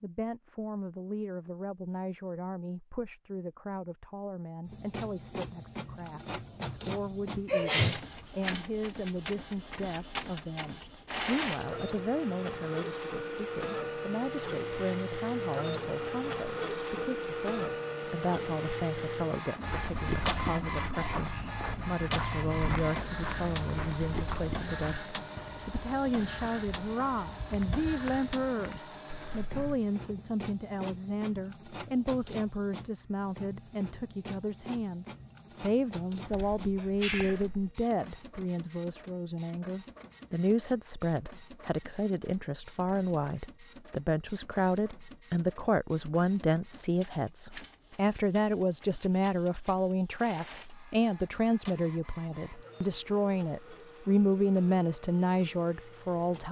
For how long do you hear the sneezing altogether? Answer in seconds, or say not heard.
2 s.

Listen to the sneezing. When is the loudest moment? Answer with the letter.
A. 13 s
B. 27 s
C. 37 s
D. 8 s
D.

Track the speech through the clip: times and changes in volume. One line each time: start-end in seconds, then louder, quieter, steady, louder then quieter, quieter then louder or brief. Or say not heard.
0.0-56.4 louder.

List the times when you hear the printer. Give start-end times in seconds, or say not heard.
4.7-56.4.